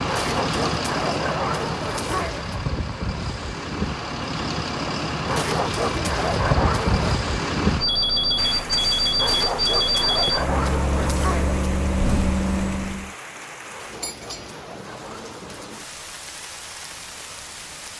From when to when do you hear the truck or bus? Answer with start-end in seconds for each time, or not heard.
0.0-13.1.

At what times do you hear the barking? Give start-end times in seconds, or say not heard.
0.1-2.5, 5.2-7.2, 9.2-11.6, 13.7-15.8.